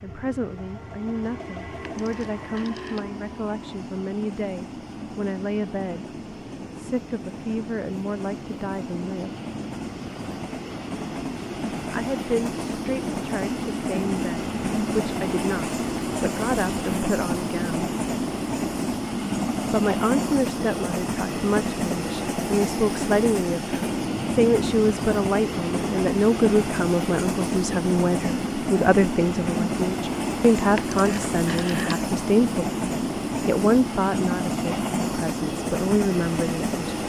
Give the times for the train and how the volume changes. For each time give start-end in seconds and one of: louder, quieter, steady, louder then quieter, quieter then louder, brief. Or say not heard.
0.0-37.0 louder.